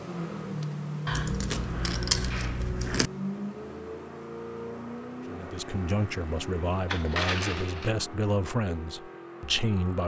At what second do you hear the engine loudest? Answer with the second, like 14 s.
1 s.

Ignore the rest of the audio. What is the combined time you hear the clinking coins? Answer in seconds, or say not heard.
3 s.